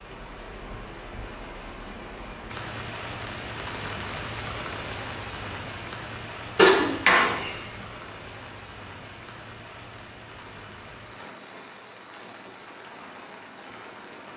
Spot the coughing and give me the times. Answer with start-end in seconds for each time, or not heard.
6.5-7.5.